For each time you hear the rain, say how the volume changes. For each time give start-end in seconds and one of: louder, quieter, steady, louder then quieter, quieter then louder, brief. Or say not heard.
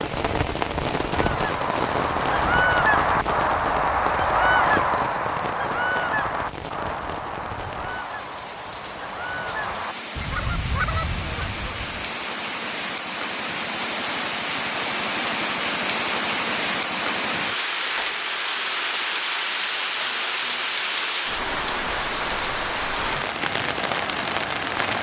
0.0-24.9 quieter then louder.